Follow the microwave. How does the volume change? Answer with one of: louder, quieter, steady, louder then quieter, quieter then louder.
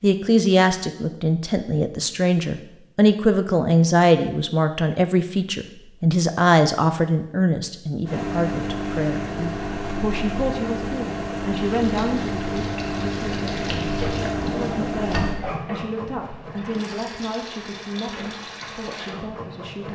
steady.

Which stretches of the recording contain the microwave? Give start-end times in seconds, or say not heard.
8.1-15.4.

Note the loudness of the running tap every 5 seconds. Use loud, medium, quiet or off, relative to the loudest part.
off, off, loud, loud.